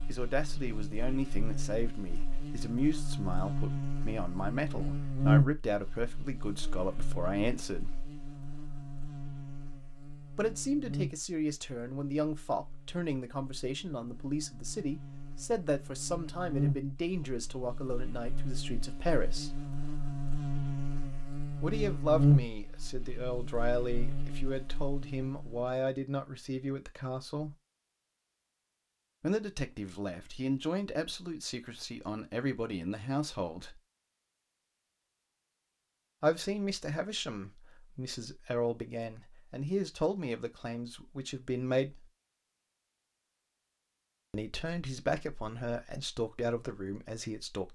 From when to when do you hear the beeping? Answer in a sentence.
You can't hear the beeping here.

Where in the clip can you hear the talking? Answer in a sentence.
You can hear the talking from 0.1 to 8.0 s, from 10.3 to 19.6 s, from 21.6 to 27.6 s, from 29.2 to 33.8 s, from 36.2 to 42.0 s and from 44.3 to 47.6 s.